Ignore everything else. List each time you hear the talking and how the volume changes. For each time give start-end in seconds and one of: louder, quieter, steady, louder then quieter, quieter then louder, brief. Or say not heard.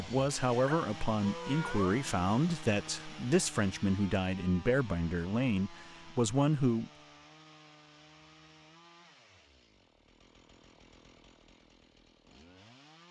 0.0-6.9 steady.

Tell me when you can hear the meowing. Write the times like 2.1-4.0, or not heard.
0.7-2.0.